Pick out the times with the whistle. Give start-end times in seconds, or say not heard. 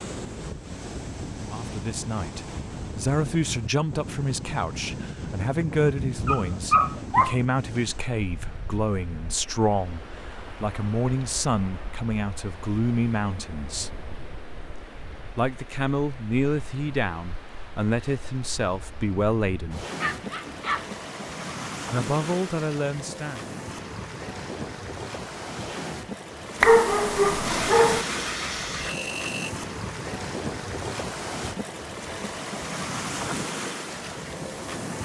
not heard.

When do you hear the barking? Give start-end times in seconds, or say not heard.
5.0-7.3, 19.9-20.9, 26.6-28.1.